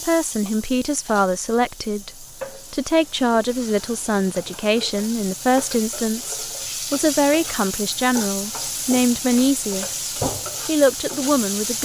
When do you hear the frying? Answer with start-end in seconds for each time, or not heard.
0.0-11.8.